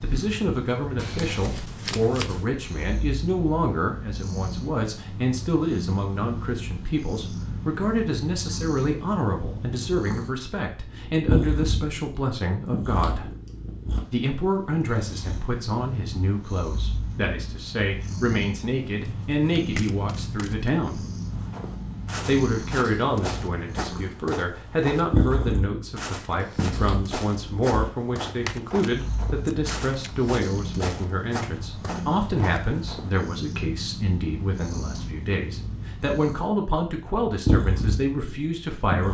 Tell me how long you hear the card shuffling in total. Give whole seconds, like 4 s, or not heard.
5 s.